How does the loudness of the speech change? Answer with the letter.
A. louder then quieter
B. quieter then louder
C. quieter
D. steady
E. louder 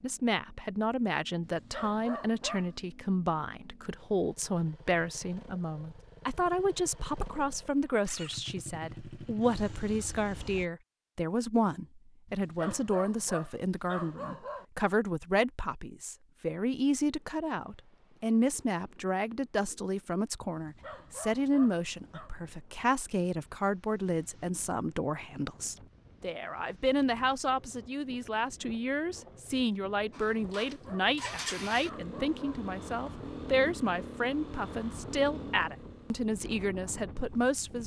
D.